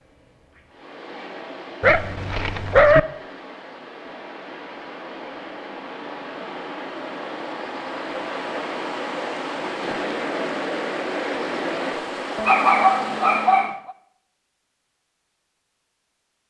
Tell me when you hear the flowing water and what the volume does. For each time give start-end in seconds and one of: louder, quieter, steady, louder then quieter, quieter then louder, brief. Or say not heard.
0.0-13.8 louder.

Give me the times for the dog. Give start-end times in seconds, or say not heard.
1.8-3.0, 12.3-13.9.